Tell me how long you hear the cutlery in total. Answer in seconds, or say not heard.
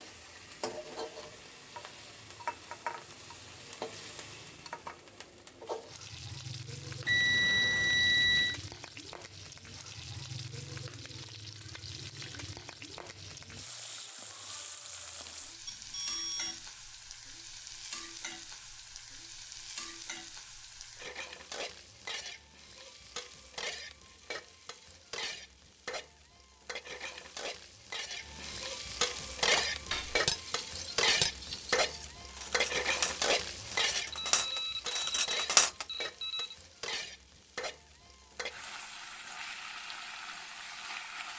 6 s.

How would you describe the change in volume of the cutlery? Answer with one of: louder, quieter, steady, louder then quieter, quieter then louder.
steady.